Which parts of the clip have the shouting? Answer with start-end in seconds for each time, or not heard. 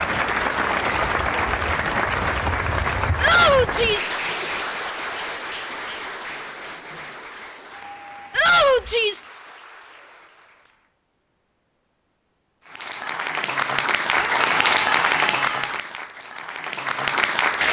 3.2-4.2, 8.3-9.3, 14.2-15.8.